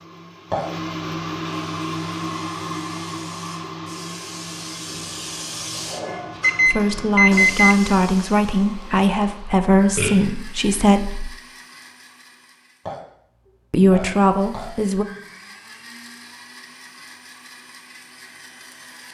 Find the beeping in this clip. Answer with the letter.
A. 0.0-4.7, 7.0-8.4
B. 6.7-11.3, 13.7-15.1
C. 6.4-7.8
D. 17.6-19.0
C.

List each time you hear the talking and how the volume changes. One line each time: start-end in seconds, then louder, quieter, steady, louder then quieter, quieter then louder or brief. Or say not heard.
6.7-11.3 steady
13.7-15.1 brief.